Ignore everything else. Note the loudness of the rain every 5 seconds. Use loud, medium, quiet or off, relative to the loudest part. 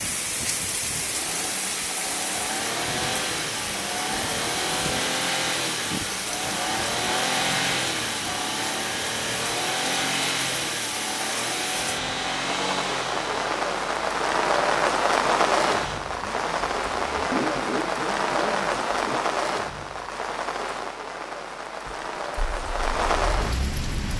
medium, medium, loud, loud, medium.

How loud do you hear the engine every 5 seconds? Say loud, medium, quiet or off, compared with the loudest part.
loud, loud, loud, medium, medium.